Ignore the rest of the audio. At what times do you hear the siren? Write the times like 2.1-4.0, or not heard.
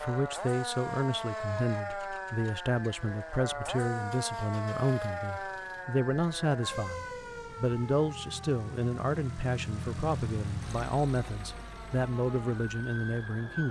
0.0-13.6.